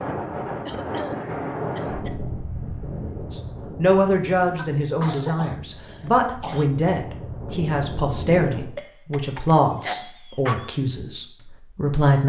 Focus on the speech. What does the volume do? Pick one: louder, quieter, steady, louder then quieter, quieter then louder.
quieter.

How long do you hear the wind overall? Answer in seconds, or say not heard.
9 s.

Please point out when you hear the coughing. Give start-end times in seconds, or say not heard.
0.7-2.2, 4.5-6.7, 8.8-10.8.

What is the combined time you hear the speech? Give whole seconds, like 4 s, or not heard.
9 s.